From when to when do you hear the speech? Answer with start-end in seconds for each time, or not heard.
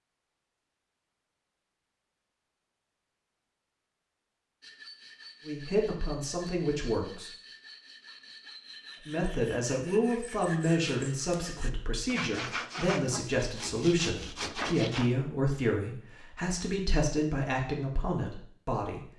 5.5-7.3, 9.1-19.1.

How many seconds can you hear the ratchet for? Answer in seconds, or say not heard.
not heard.